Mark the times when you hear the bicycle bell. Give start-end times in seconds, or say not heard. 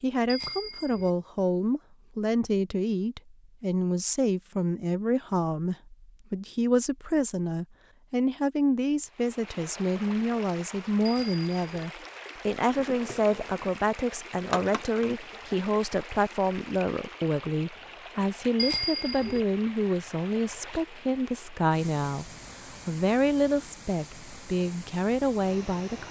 0.2-1.1, 11.1-11.9, 18.6-19.4.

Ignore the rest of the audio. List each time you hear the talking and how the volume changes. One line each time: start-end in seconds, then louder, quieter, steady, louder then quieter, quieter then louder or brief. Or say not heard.
0.0-26.0 steady.